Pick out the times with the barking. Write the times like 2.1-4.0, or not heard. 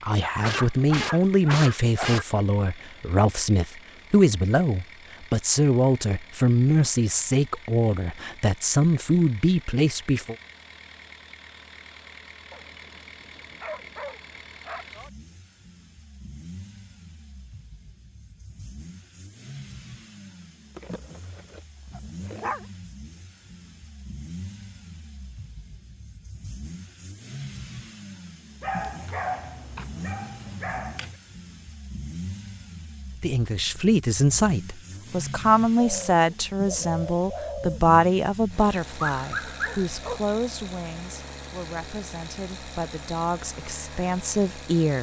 0.2-2.2, 12.5-14.8, 20.8-22.6, 28.6-31.1, 39.0-40.2.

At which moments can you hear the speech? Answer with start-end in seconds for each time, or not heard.
0.0-10.3, 33.2-44.9.